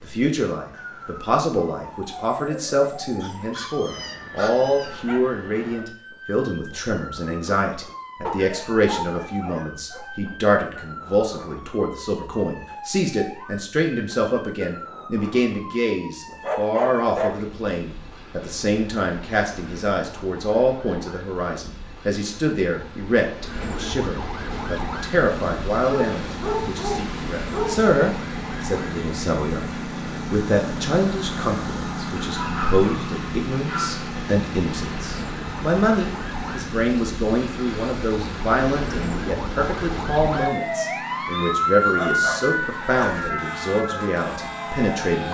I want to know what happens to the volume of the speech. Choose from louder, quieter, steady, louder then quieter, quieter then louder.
steady.